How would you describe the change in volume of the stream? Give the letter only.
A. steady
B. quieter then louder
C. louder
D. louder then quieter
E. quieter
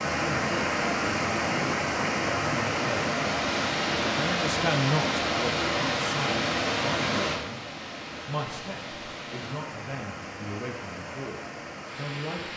E.